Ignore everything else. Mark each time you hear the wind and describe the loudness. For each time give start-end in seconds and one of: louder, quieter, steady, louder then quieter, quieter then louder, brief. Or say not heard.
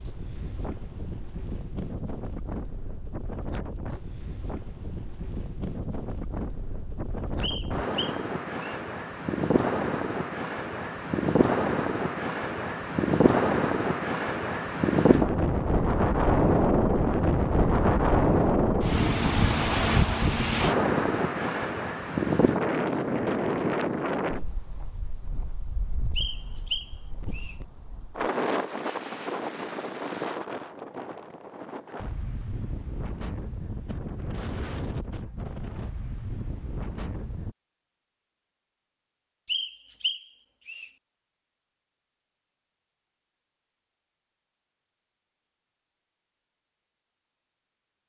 0.0-37.5 louder then quieter.